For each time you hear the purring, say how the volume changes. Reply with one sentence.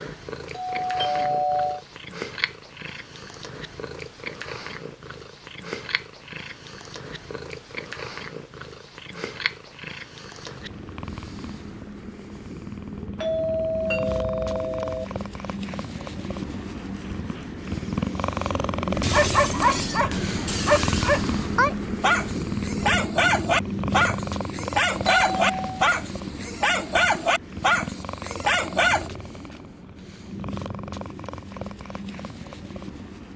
The purring can be heard from 0.0 to 33.3 s, getting louder then quieter.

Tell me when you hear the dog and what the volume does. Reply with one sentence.
The dog can be heard from 18.9 to 29.1 s, at a steady volume.